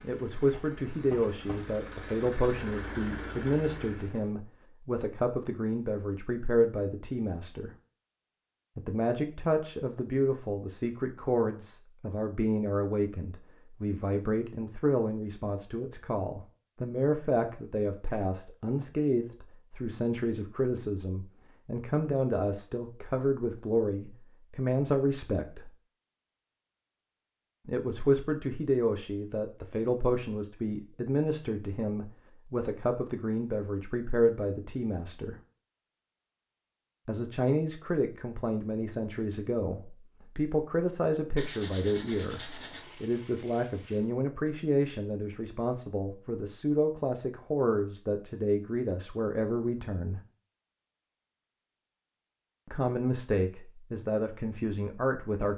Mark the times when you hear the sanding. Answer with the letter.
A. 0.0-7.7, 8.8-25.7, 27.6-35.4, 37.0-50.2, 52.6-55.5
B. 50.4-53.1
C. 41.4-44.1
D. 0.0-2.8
C.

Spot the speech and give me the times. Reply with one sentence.
You can hear the speech from 0.0 to 7.7 s, from 8.8 to 25.7 s, from 27.6 to 35.4 s, from 37.0 to 50.2 s and from 52.6 to 55.5 s.